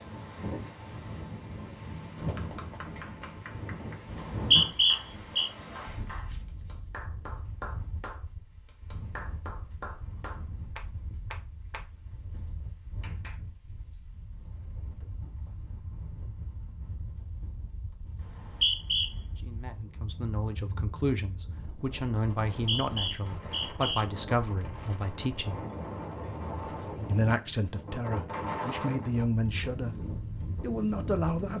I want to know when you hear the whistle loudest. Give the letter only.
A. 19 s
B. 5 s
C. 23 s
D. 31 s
B.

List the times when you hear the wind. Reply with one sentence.
The wind can be heard from 0.0 to 31.5 s.